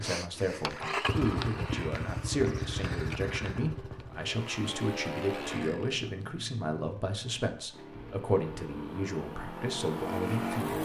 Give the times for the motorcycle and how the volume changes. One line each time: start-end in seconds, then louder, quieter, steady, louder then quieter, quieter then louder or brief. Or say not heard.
0.0-10.8 quieter then louder.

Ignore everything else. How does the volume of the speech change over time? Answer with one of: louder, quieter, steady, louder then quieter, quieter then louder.
steady.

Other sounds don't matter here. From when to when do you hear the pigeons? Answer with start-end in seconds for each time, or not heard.
not heard.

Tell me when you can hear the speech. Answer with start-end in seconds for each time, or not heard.
0.0-10.8.